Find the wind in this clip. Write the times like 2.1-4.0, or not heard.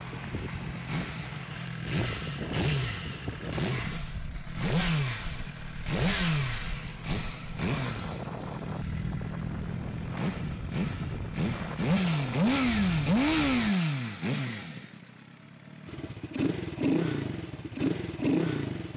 0.0-13.8.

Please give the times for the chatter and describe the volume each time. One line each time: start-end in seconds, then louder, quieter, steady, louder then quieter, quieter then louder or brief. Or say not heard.
not heard.